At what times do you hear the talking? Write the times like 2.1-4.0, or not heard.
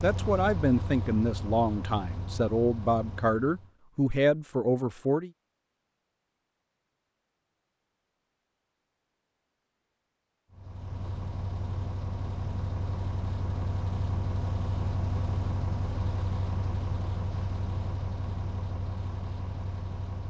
0.0-5.3.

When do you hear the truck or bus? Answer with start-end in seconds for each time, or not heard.
0.0-3.7, 10.5-20.2.